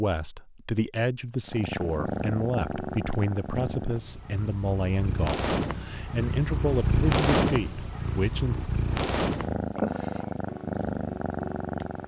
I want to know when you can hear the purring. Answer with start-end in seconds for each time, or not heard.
1.4-12.0.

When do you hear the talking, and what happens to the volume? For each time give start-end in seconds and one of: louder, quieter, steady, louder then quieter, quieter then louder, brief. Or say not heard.
0.0-8.6 steady.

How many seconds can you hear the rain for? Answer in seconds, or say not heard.
not heard.